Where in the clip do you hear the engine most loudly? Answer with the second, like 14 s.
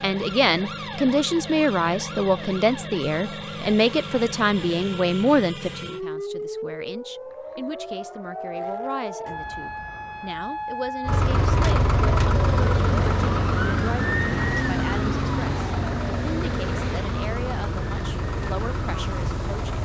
12 s.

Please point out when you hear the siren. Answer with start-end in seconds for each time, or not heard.
0.0-19.8.